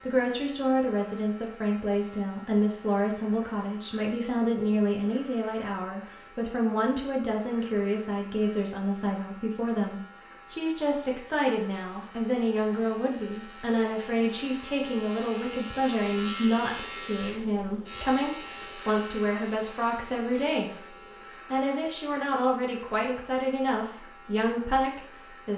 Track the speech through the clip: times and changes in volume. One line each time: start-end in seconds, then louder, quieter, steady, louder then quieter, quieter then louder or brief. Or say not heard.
0.1-25.5 steady.